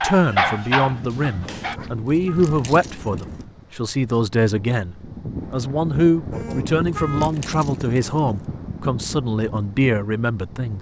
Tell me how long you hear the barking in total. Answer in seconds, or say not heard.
2 s.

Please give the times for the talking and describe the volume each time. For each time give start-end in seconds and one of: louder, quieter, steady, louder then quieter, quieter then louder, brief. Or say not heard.
0.0-10.7 steady.